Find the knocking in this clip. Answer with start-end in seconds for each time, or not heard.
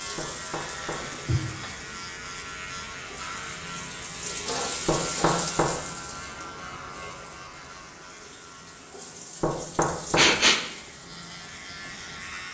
0.1-1.1, 4.8-5.8, 9.4-10.3.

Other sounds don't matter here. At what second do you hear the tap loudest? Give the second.
5 s.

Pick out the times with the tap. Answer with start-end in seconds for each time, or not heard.
0.0-12.4.